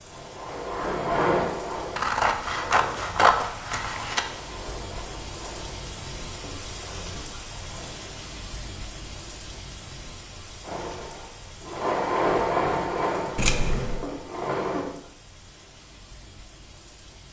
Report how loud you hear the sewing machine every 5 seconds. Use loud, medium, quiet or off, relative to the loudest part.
loud, quiet, loud, off.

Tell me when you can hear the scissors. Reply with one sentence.
The scissors can be heard from 1.9 to 4.2 s and from 13.3 to 14.1 s.